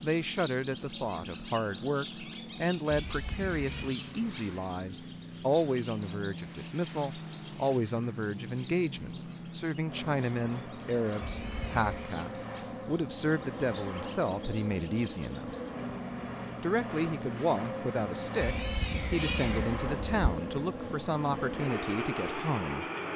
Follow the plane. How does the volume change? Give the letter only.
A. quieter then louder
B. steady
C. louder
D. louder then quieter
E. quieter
C.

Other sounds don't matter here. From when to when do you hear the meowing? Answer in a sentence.
The meowing can be heard from 2.9 to 4.0 s, from 11.2 to 12.2 s and from 18.4 to 20.4 s.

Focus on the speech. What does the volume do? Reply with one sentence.
The loudness of the speech stays about the same.